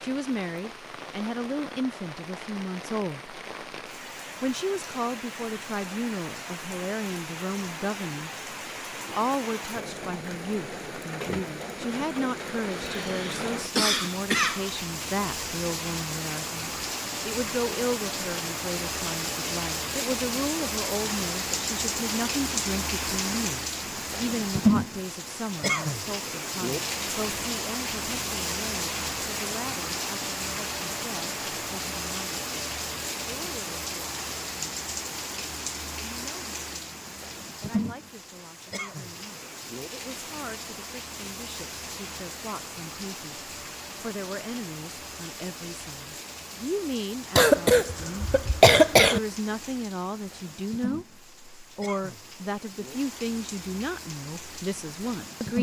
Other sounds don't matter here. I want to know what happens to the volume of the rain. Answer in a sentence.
The volume of the rain goes up, then down.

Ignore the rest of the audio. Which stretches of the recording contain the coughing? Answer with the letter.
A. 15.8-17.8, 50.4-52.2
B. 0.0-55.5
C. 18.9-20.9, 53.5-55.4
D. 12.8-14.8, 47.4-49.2
D.